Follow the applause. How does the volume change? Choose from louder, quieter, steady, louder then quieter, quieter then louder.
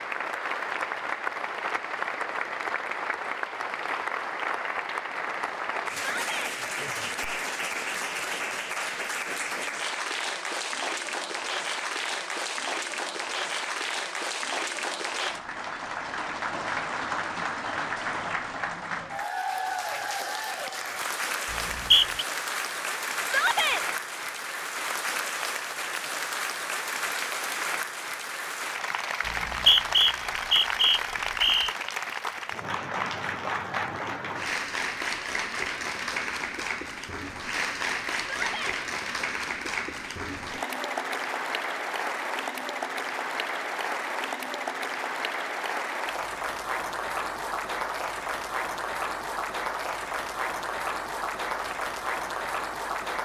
steady.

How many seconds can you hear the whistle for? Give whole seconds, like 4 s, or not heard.
3 s.